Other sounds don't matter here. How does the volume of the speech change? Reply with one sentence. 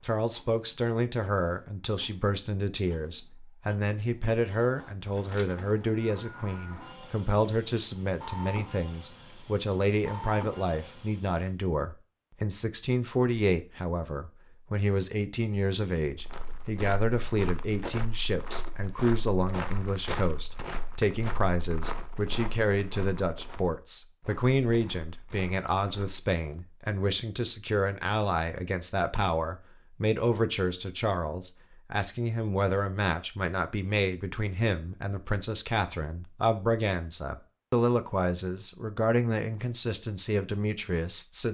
The loudness of the speech stays about the same.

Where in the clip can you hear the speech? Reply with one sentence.
You can hear the speech from 0.0 to 41.4 s.